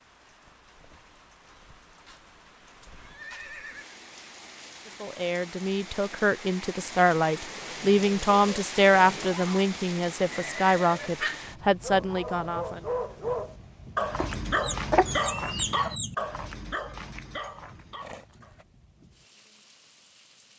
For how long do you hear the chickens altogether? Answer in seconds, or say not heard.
2 s.